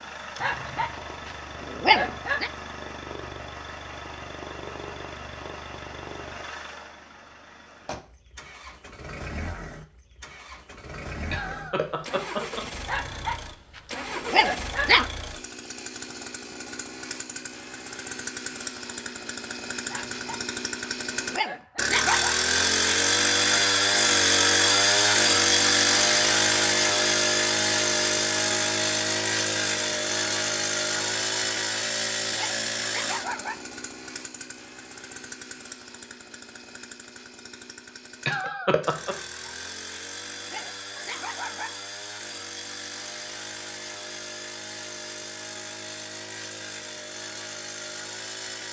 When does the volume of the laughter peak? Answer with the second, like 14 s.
39 s.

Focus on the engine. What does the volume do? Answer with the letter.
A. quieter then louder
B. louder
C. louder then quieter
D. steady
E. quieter
C.